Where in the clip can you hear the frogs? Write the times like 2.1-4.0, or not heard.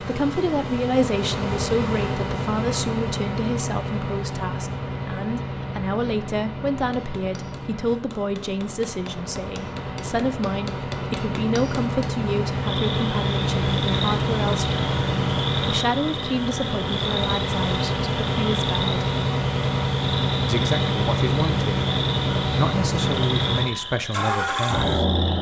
12.6-25.3.